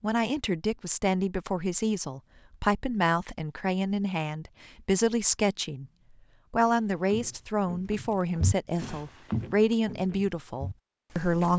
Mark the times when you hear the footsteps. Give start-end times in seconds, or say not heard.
6.6-11.5.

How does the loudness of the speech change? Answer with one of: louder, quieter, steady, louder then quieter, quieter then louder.
steady.